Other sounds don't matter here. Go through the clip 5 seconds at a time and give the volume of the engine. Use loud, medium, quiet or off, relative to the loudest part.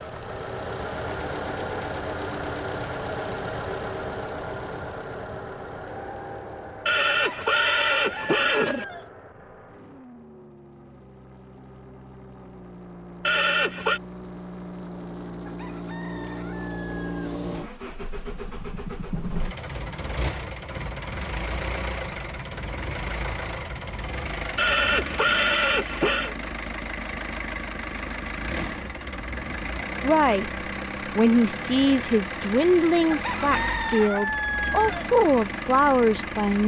loud, medium, medium, loud, loud, loud, loud, loud.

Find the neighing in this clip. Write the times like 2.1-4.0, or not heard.
6.8-8.8, 13.2-14.0, 24.6-26.4.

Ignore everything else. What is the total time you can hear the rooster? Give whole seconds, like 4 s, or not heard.
6 s.